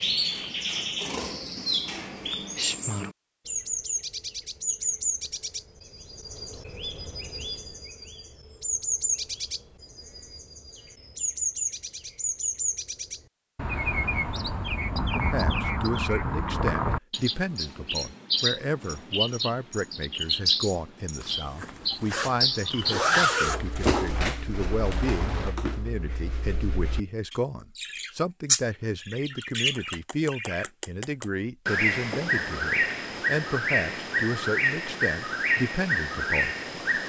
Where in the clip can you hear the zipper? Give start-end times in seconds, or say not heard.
21.2-23.8.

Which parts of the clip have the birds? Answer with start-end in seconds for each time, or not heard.
0.0-37.0.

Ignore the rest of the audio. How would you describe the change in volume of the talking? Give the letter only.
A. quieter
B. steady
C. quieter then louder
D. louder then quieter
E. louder
B.